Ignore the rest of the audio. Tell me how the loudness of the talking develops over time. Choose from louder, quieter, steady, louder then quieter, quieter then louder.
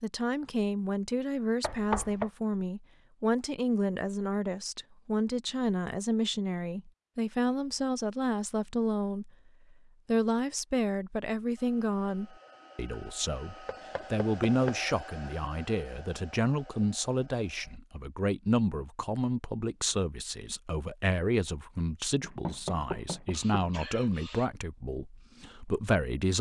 steady.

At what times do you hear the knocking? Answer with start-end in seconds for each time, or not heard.
1.6-2.3, 13.7-14.8, 22.2-23.6.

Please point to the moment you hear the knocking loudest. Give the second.
2 s.